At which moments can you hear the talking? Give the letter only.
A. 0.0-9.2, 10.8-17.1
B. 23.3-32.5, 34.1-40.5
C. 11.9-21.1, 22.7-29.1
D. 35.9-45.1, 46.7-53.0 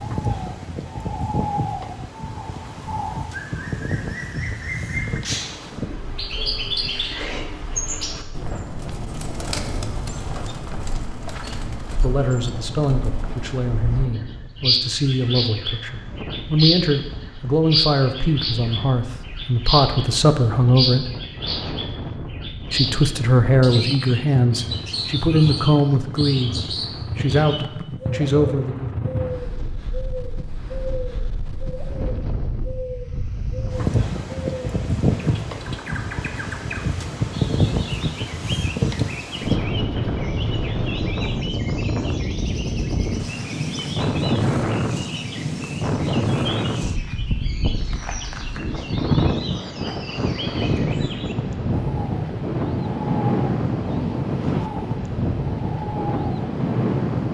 C.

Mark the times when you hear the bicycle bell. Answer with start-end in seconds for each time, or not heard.
not heard.